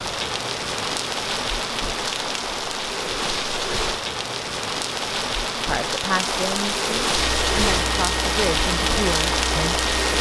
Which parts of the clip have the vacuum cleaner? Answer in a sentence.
The vacuum cleaner can be heard from 7.1 to 10.1 s.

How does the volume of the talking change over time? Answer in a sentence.
The volume of the talking goes down, then up.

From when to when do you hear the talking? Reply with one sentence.
You can hear the talking from 5.7 to 9.8 s.